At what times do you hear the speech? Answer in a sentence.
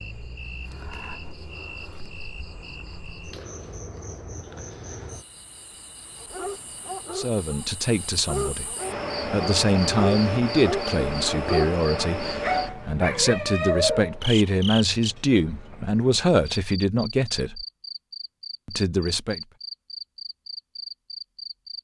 The speech can be heard from 7.1 to 17.6 s and from 18.6 to 19.4 s.